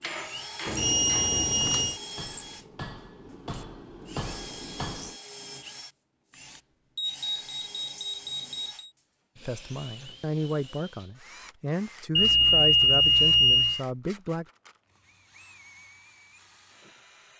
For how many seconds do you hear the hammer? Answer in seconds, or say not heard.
5 s.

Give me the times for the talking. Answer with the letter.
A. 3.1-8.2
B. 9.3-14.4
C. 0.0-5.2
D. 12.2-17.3
B.